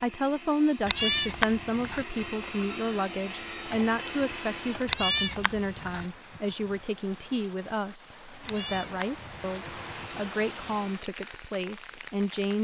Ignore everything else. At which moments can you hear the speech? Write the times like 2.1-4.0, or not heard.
0.0-12.5.